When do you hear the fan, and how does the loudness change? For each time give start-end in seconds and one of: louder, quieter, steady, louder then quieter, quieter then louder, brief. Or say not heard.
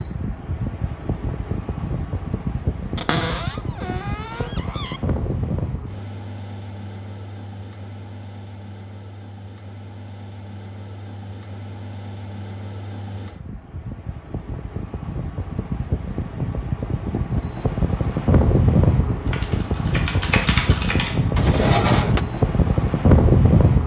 0.0-23.8 quieter then louder.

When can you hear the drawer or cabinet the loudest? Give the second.
22 s.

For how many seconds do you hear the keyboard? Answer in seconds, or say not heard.
2 s.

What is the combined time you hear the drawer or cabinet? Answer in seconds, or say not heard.
3 s.